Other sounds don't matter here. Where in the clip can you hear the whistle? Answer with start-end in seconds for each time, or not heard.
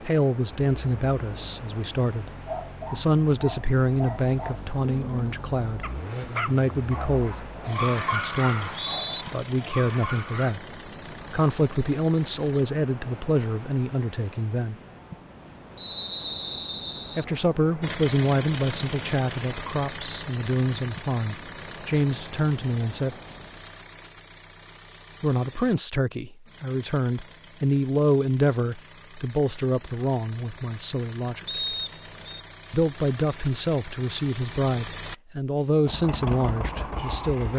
8.4-9.2, 15.8-17.2, 31.4-32.4.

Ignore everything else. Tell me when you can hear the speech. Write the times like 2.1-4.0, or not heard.
0.0-8.7, 9.3-10.6, 11.3-14.8, 17.1-23.1, 25.2-31.6, 32.7-37.5.